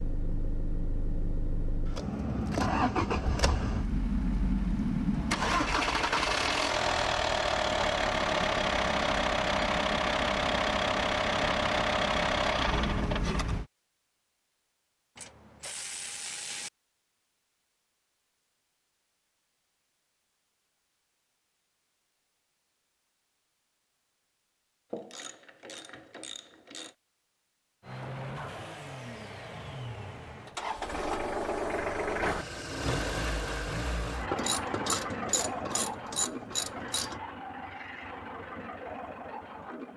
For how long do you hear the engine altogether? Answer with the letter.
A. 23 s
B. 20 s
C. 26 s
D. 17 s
C.